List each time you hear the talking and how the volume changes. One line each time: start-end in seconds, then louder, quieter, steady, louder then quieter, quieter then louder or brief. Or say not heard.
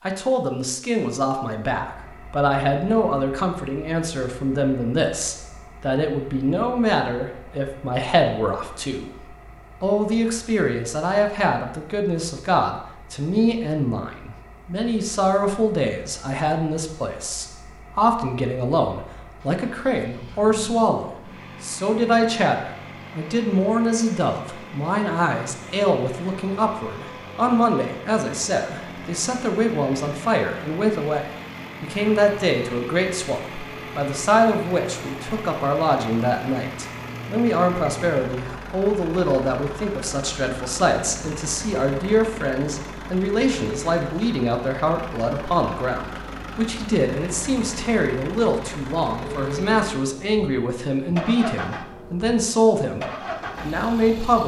0.1-54.4 steady.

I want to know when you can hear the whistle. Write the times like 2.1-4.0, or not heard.
not heard.